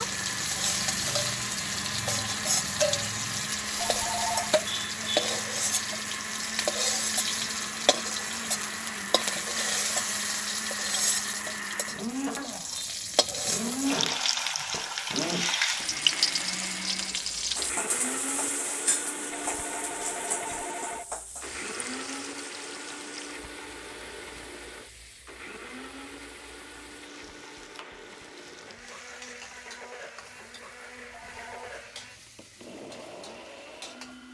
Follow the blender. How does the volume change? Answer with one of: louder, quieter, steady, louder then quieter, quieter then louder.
quieter.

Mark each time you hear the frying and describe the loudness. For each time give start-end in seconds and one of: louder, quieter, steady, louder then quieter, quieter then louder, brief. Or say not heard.
0.0-34.2 quieter.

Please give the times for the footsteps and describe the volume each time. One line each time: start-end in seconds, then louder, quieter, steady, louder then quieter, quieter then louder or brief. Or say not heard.
not heard.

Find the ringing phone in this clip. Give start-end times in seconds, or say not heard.
3.8-4.5, 19.4-21.1, 31.1-31.7.